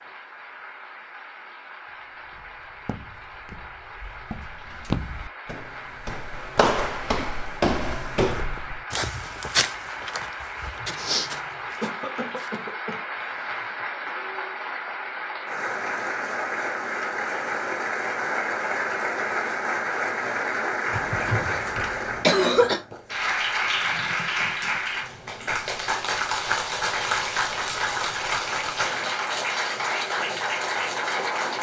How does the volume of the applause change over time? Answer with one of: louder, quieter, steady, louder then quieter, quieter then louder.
louder.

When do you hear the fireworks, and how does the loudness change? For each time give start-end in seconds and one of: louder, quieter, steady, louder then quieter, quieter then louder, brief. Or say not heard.
not heard.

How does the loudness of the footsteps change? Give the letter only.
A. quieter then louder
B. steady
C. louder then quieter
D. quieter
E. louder
C.